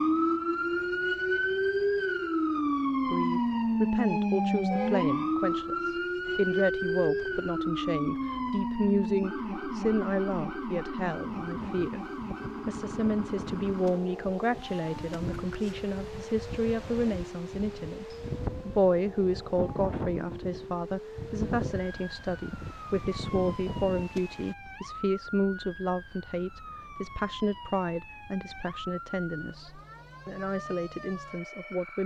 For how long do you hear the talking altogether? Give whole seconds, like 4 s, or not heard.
29 s.